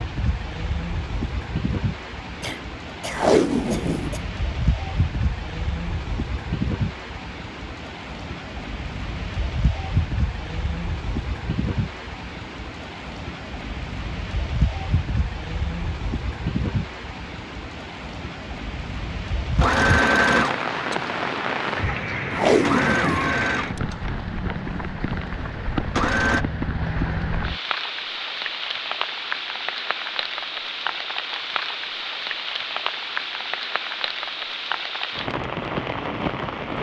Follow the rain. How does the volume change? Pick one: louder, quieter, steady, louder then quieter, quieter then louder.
steady.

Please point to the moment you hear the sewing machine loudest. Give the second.
20 s.